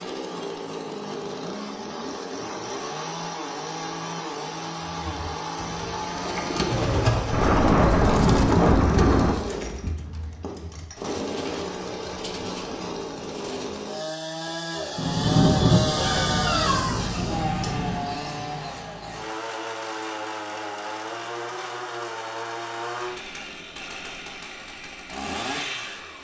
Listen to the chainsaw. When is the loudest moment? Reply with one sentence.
The volume of the chainsaw peaks at 16 seconds.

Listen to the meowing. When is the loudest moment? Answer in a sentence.
The volume of the meowing peaks at 17 seconds.